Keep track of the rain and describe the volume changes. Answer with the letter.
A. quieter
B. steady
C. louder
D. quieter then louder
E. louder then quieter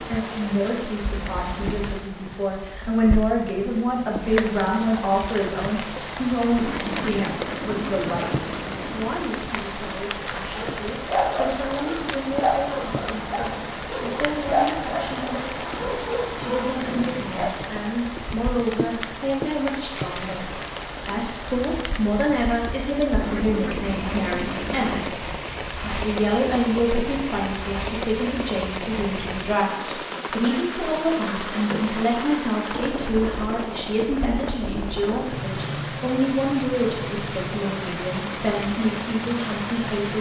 B.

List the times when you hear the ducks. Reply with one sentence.
You can hear the ducks from 6.5 to 9.2 s and from 23.2 to 25.2 s.